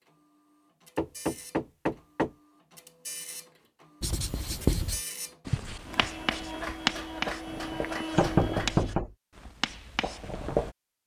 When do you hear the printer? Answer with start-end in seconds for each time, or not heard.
0.0-8.9.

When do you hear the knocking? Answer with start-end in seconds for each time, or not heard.
0.9-2.3, 8.2-9.1.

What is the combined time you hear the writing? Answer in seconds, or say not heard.
7 s.